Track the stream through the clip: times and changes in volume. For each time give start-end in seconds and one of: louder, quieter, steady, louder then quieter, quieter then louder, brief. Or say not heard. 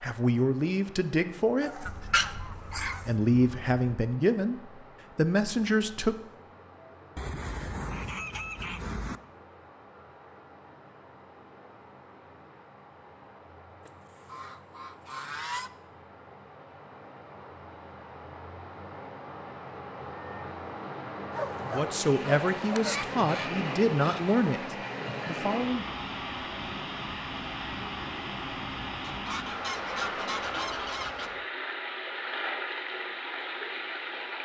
0.0-34.4 louder.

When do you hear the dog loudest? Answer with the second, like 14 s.
2 s.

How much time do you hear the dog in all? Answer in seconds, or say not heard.
3 s.